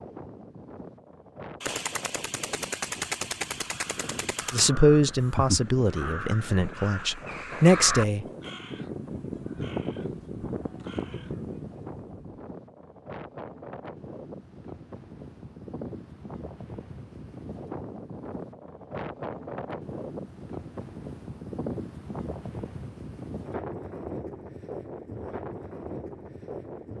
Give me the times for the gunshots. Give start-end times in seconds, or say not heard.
1.6-4.7.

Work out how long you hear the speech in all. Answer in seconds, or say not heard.
4 s.